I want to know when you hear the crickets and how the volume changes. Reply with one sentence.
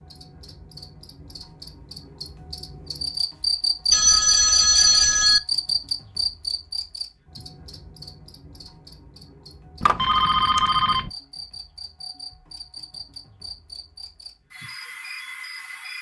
You can hear the crickets from 0.0 to 15.9 s, getting louder then quieter.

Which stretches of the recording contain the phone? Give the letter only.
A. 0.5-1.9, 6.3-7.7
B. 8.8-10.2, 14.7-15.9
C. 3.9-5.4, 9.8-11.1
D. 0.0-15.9
C.